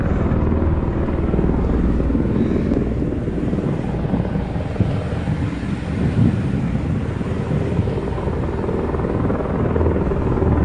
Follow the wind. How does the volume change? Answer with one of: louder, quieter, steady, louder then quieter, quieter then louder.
louder then quieter.